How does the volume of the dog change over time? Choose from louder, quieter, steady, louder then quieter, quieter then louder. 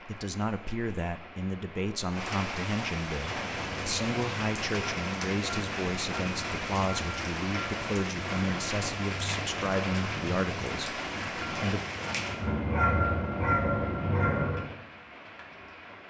louder.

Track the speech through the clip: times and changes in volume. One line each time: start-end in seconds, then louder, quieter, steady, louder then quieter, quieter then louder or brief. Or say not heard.
0.1-11.8 steady.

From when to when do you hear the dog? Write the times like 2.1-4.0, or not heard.
3.1-14.7.